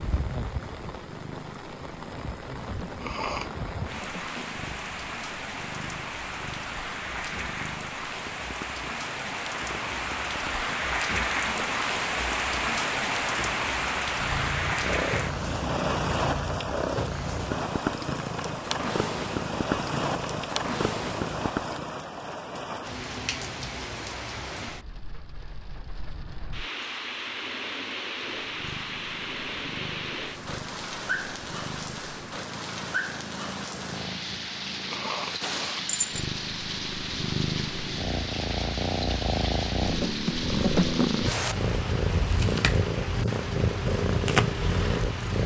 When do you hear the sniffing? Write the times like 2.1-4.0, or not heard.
3.0-3.6, 34.9-35.9.